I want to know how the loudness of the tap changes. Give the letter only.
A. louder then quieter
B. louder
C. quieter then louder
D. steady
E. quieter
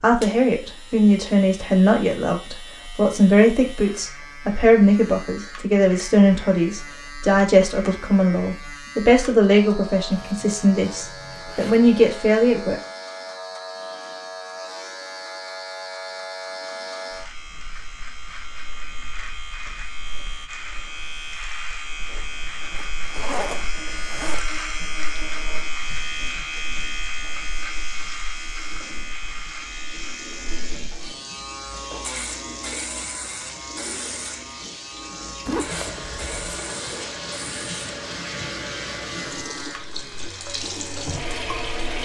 B.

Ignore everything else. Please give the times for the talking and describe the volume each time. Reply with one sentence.
The talking can be heard from 0.0 to 12.8 s, at a steady volume.